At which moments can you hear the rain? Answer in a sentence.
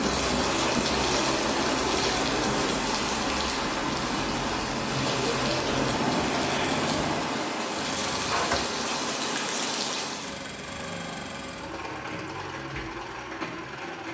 The rain can be heard from 0.0 to 10.4 s.